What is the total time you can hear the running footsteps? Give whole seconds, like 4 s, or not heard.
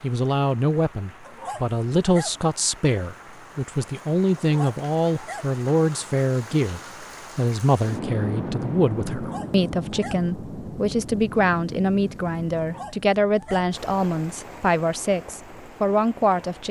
not heard.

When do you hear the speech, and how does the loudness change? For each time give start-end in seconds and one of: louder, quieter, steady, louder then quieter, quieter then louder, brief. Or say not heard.
0.0-16.6 steady.